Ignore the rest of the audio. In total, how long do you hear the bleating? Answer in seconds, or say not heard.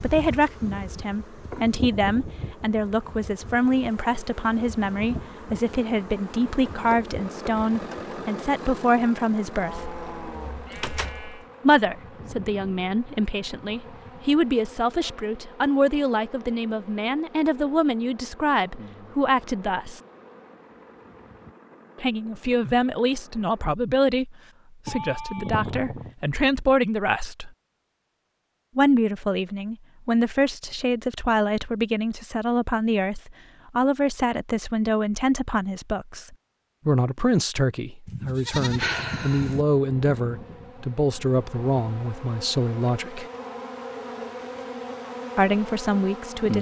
5 s.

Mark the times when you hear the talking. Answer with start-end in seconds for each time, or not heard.
0.0-10.0, 11.6-20.0, 22.0-27.5, 28.8-43.2, 45.4-46.5.